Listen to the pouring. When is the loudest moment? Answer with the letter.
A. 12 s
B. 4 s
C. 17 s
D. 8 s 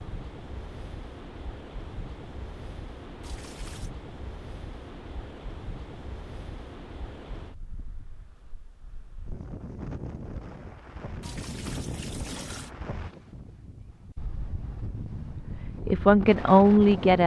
A.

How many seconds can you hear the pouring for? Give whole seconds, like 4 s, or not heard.
2 s.